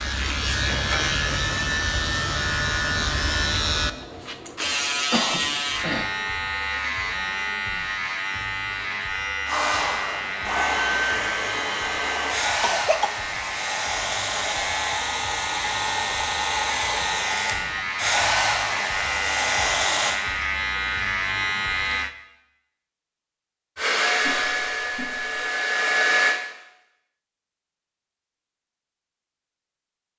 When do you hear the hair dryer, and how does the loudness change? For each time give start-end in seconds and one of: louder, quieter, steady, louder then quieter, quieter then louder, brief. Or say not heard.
9.4-20.2 steady
23.8-26.4 brief.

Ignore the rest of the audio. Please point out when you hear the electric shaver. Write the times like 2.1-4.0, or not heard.
0.0-22.1.